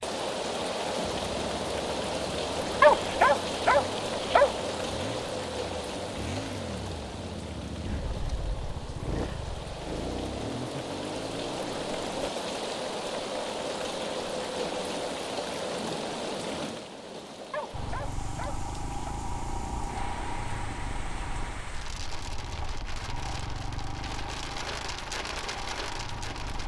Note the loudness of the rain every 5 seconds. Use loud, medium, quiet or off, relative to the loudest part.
loud, medium, loud, medium, medium, medium.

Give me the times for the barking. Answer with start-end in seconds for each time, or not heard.
2.8-4.5, 17.5-19.1.